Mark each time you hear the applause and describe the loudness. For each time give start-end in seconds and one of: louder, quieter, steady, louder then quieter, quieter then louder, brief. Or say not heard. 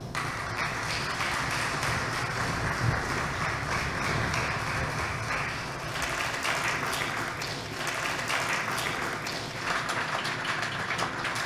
0.0-11.4 steady.